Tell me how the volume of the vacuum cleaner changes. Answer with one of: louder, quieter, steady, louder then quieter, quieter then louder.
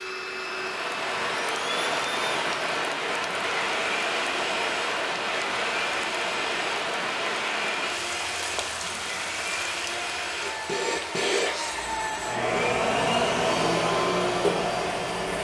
louder.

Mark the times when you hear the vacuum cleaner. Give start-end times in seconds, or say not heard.
0.0-15.3.